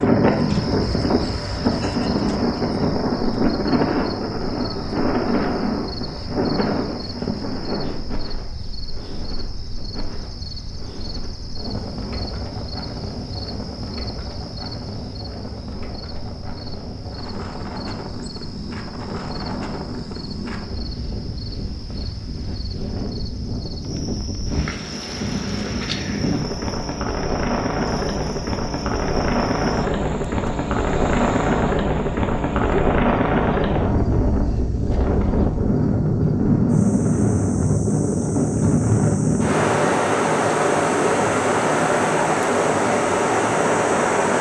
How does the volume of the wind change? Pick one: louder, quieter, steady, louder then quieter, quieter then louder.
quieter then louder.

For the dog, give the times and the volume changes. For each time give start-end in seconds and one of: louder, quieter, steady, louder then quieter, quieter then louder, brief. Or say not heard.
not heard.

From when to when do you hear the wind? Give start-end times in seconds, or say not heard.
0.0-44.3.